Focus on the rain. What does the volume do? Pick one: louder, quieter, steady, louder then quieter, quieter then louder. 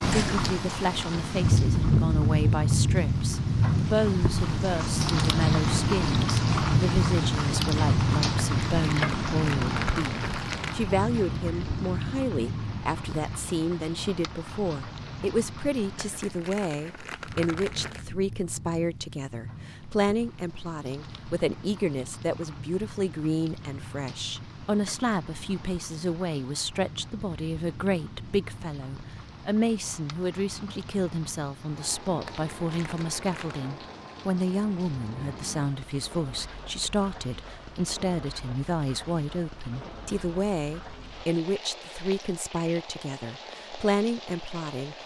quieter.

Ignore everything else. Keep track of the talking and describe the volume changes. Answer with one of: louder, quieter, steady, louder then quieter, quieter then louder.
steady.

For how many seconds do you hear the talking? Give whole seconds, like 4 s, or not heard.
45 s.